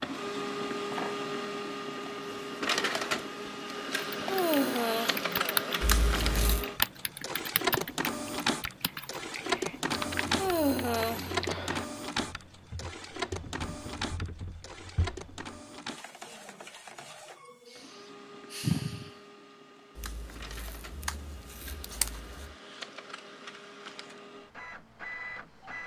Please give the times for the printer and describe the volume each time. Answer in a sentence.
You can hear the printer from 0.0 to 25.8 s, getting quieter.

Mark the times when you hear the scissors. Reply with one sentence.
The scissors can be heard from 5.8 to 6.7 s and from 19.9 to 22.6 s.